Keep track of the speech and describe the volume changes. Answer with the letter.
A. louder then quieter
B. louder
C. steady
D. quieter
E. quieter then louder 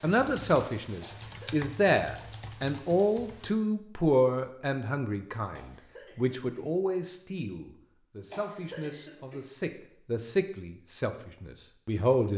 E.